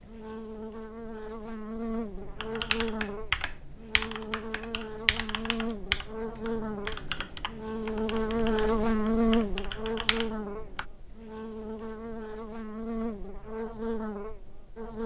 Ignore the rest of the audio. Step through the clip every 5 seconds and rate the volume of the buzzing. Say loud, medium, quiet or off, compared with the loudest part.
medium, loud, medium.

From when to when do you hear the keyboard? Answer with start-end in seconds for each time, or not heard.
2.1-10.8.